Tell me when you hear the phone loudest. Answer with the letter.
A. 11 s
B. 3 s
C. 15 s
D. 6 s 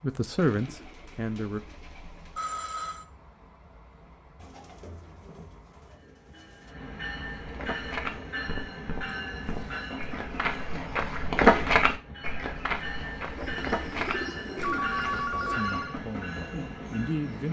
C.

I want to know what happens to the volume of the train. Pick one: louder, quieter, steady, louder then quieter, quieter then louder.
louder.